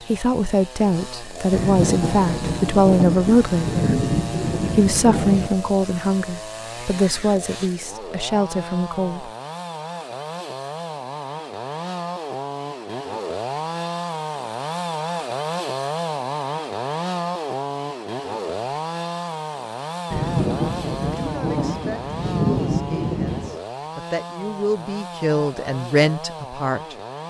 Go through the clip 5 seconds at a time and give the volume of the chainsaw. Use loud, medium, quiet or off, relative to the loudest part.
medium, medium, loud, loud, medium, medium.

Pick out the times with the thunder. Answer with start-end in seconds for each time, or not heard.
1.5-5.5, 20.1-23.6.